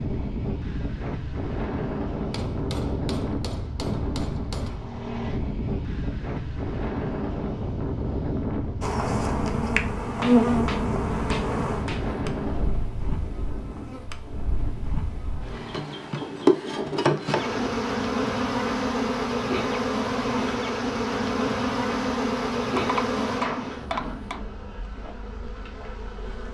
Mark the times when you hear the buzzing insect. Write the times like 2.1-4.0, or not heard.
8.8-26.4.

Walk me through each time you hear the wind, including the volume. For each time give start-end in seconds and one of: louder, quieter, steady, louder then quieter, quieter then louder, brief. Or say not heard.
0.0-17.6 quieter.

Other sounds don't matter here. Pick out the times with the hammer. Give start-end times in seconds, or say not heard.
2.3-4.8, 10.2-12.1, 22.8-24.4.